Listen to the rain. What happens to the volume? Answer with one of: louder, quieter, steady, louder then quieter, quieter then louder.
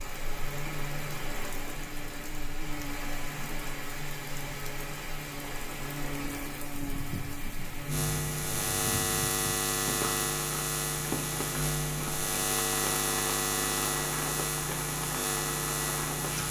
steady.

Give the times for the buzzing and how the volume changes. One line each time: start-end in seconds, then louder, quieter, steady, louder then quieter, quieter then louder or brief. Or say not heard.
0.0-16.4 louder.